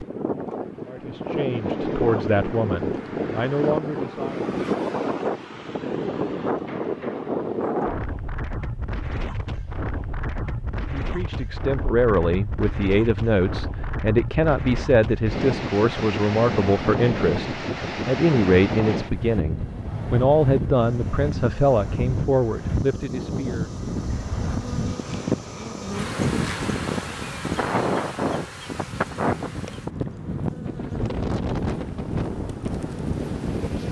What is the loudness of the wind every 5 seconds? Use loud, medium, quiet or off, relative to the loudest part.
loud, loud, medium, loud, loud, loud, loud.